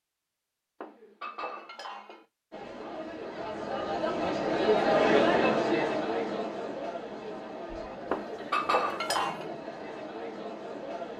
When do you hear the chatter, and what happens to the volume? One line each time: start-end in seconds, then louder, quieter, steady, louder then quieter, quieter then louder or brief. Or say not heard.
2.5-11.1 louder then quieter.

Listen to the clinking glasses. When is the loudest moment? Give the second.
9 s.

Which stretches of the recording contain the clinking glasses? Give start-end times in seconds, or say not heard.
0.8-2.2, 8.1-9.4.